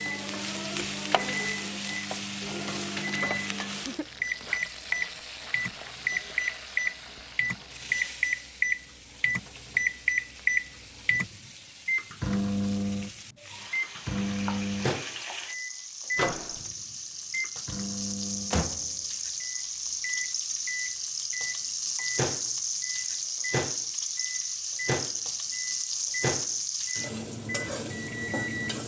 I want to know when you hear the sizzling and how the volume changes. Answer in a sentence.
You can hear the sizzling from 0.0 to 28.8 s, getting quieter then louder.